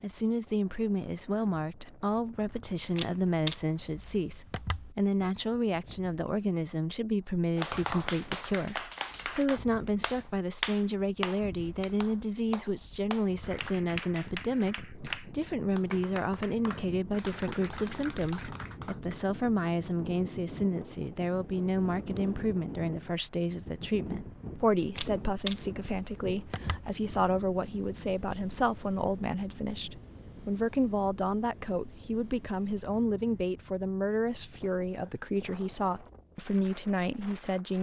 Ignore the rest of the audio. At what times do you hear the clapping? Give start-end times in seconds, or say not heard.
7.5-19.1.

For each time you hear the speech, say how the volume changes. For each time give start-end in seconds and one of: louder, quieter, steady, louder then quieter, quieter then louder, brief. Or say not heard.
0.0-37.7 steady.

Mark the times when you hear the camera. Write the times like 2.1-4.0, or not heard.
3.0-5.0, 24.9-26.9.